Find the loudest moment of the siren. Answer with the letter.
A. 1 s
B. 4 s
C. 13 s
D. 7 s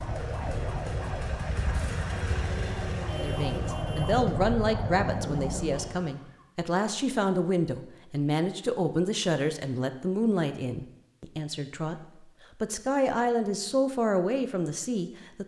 B.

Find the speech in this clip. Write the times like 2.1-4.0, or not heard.
3.1-15.4.